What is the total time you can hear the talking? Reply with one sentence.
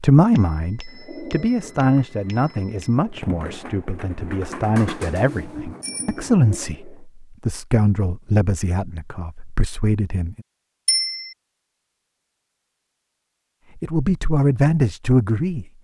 You can hear the talking for 12 seconds altogether.